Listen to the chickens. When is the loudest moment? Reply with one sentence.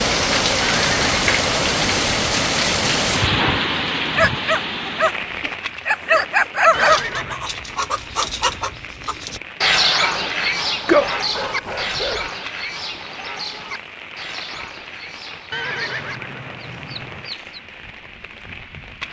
The loudest moment of the chickens is at 10 seconds.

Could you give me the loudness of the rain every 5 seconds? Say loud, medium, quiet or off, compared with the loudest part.
loud, quiet, quiet, quiet.